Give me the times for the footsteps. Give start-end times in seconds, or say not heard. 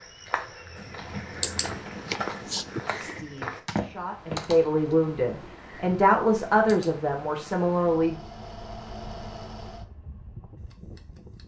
0.0-4.5.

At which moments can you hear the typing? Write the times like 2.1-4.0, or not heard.
0.8-7.0.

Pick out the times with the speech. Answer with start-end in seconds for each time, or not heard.
3.0-8.2.